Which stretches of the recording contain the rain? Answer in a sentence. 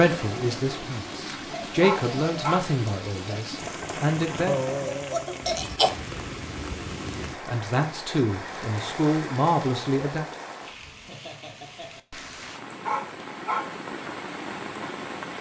You can hear the rain from 0.0 to 15.3 s.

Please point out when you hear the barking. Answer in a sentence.
You can hear the barking from 1.8 to 2.8 s and from 12.8 to 13.8 s.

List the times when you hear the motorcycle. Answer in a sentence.
You can't hear the motorcycle here.